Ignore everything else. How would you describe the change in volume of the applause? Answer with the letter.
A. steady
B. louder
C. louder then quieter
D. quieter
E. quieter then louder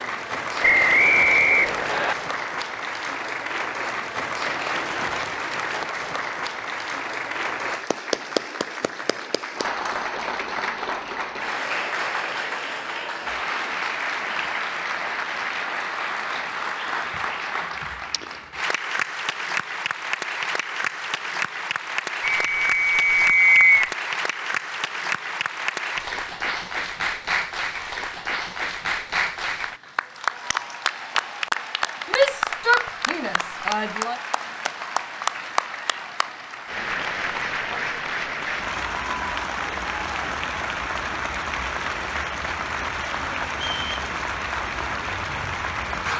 A.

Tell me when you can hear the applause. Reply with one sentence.
The applause can be heard from 0.0 to 46.1 s.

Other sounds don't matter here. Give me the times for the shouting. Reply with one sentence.
The shouting can be heard from 32.0 to 34.2 s.